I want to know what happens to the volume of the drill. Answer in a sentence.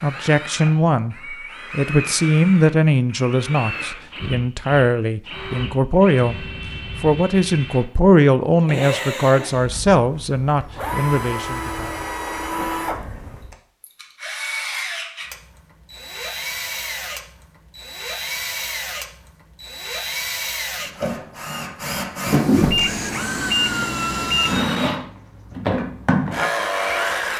The volume of the drill goes up.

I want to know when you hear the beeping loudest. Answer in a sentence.
The volume of the beeping peaks at 23 seconds.